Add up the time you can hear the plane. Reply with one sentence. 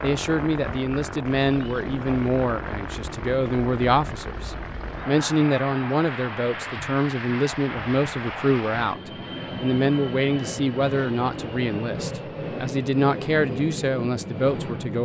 You can hear the plane for 15 seconds altogether.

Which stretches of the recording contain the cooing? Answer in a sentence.
The cooing can't be heard in this clip.